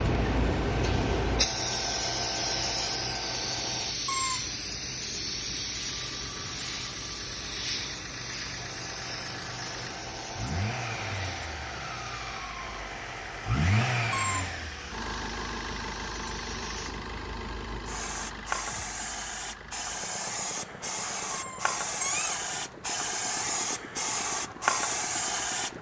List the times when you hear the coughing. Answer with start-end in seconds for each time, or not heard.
not heard.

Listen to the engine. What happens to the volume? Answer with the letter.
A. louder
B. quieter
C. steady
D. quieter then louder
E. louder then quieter
E.